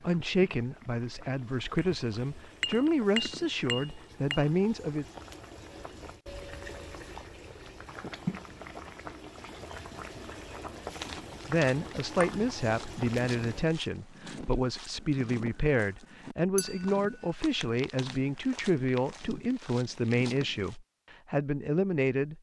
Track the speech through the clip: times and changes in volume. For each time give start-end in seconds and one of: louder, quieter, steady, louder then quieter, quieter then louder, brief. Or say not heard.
0.0-5.0 steady
11.4-22.3 steady.